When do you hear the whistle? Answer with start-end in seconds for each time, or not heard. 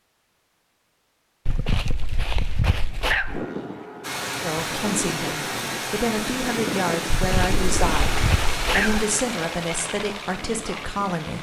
not heard.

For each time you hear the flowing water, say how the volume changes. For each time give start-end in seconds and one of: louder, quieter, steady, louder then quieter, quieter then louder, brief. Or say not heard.
4.0-11.3 quieter.